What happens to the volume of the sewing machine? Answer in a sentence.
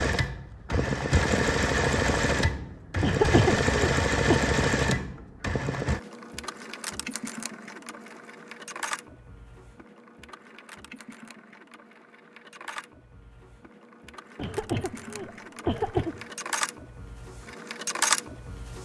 The volume of the sewing machine goes down, then up.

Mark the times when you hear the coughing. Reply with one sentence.
The coughing can be heard from 3.0 to 4.4 s and from 14.3 to 16.2 s.